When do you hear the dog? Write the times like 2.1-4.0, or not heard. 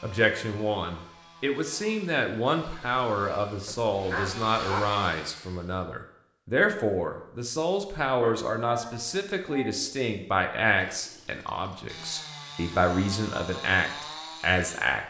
3.6-5.0, 8.2-9.9.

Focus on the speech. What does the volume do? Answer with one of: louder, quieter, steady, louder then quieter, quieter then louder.
steady.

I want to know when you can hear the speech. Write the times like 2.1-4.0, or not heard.
0.0-15.0.